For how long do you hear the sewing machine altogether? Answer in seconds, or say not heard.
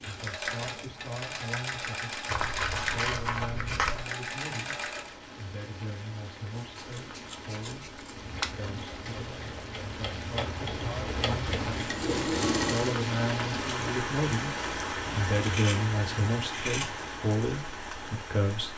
10 s.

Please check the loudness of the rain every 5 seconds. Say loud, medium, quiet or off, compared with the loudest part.
quiet, medium, loud, loud.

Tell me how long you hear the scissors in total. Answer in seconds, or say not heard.
6 s.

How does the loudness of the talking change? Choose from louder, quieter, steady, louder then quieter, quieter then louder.
louder.